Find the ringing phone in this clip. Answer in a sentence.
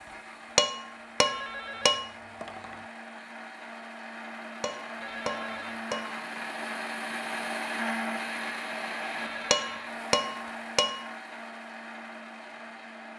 You can hear the ringing phone from 1.2 to 2.9 s, from 5.0 to 5.8 s and from 9.2 to 9.9 s.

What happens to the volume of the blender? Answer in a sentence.
The loudness of the blender goes up, then down.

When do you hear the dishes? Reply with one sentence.
The dishes can be heard from 0.6 to 2.0 s, from 4.6 to 6.2 s and from 9.5 to 11.1 s.